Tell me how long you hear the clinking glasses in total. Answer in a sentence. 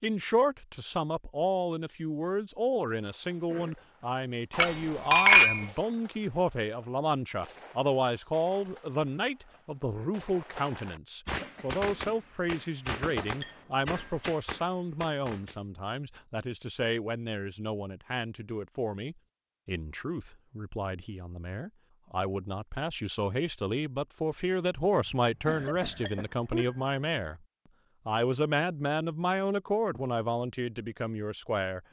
The clinking glasses can be heard for 3 seconds in total.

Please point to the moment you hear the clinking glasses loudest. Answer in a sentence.
The volume of the clinking glasses peaks at 5 seconds.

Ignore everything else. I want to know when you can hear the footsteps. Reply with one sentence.
The footsteps can't be heard in this clip.